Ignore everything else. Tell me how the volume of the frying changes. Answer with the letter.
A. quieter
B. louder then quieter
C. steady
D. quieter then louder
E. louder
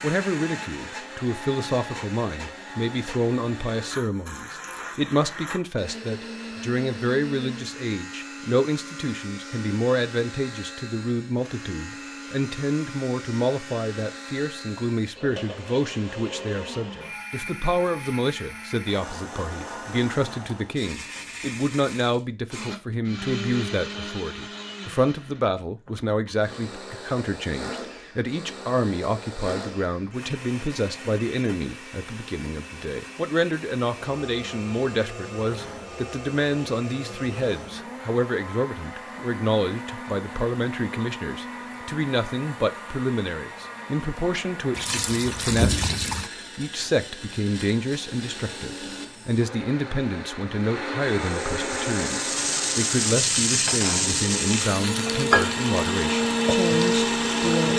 B.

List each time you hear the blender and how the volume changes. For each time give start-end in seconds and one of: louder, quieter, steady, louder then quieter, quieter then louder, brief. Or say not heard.
0.0-57.7 louder.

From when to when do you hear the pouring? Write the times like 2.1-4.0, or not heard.
44.8-46.3.